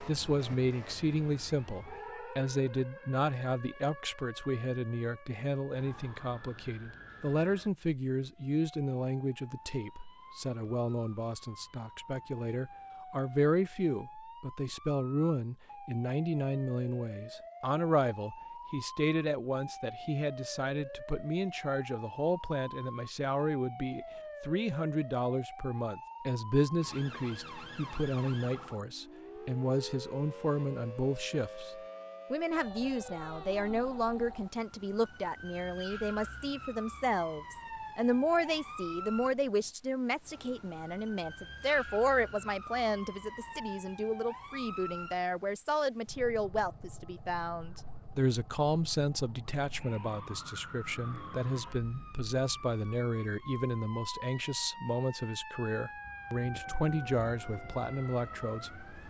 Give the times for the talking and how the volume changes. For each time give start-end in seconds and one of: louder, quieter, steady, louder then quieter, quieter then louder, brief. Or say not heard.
0.0-58.9 steady.